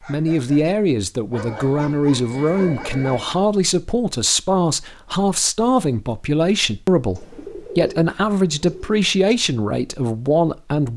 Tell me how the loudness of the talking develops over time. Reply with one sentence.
The volume of the talking stays about the same.